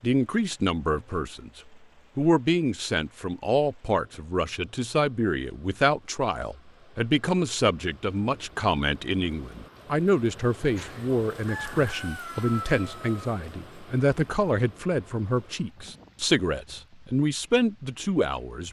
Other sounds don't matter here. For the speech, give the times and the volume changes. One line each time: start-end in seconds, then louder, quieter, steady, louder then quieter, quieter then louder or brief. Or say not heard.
0.0-18.6 steady.